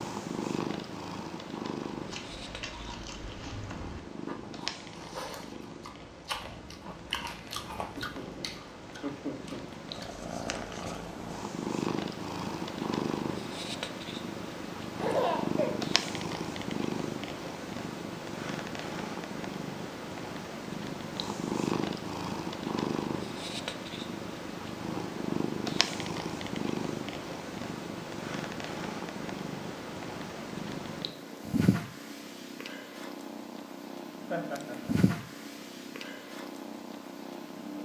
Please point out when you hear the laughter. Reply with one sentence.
The laughter can be heard from 8.0 to 9.7 s, from 14.9 to 15.8 s and from 34.2 to 35.0 s.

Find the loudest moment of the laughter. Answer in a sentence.
The volume of the laughter peaks at 15 seconds.